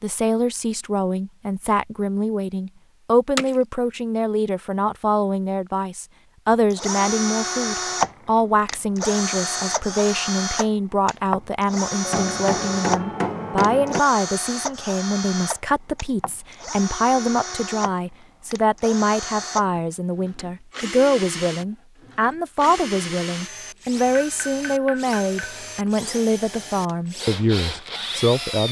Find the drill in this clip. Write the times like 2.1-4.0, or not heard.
6.5-28.6.